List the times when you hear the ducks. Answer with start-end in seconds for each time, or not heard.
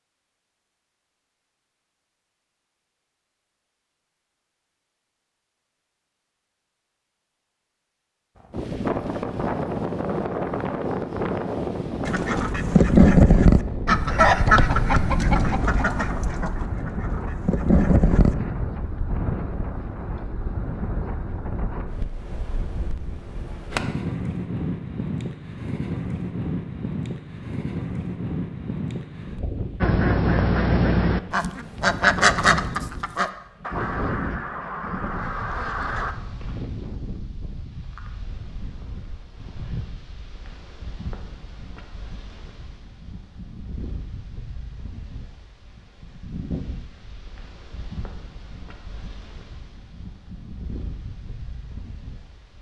12.1-18.4, 29.8-36.1.